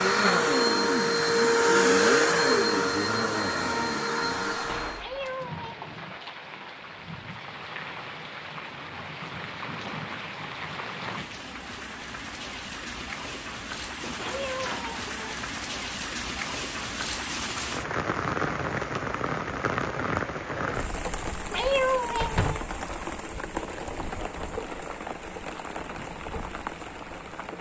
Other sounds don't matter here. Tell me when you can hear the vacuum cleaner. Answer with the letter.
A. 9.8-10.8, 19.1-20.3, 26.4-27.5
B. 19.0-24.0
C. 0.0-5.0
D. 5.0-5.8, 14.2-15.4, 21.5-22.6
C.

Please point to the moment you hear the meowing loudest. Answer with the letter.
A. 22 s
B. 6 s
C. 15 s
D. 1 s
A.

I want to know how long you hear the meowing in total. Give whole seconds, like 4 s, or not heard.
3 s.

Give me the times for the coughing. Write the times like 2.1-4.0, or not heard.
not heard.